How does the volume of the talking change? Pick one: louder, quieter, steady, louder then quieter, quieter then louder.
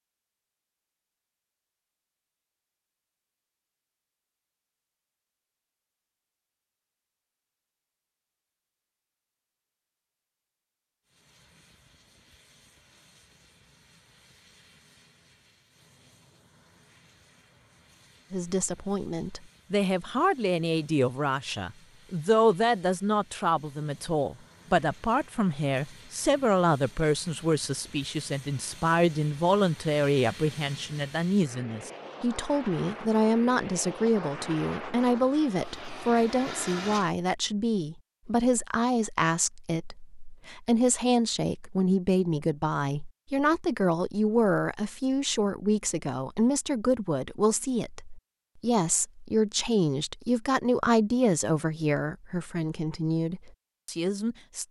steady.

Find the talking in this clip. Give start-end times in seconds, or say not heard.
18.3-54.6.